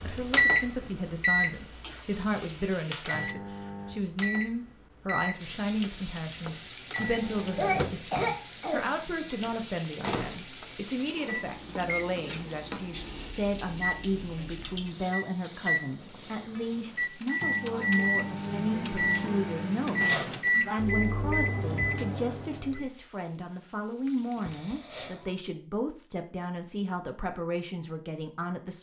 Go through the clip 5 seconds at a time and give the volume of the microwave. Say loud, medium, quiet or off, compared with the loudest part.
loud, medium, medium, loud, loud, off.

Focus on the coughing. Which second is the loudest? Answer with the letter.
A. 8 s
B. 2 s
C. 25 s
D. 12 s
A.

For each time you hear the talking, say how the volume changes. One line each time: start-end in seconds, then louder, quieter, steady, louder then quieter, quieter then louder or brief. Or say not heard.
0.0-28.7 steady.